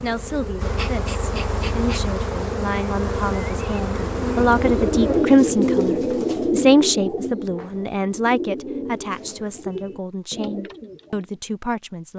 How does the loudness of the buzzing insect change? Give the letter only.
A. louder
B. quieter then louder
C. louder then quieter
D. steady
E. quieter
D.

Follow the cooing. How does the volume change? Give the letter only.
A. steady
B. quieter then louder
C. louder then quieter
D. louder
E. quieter
E.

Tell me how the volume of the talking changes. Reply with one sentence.
The volume of the talking goes up, then down.